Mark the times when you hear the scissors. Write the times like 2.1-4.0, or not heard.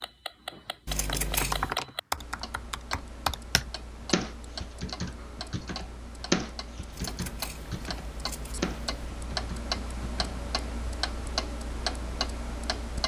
0.8-1.8, 6.9-9.1.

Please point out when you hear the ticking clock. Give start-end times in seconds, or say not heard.
0.0-13.0.